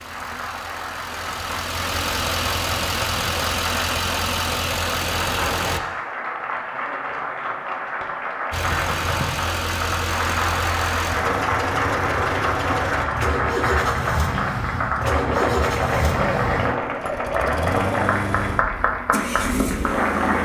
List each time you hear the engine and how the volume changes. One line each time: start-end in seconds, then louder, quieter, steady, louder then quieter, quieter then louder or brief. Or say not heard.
0.0-5.8 louder
8.5-20.3 steady.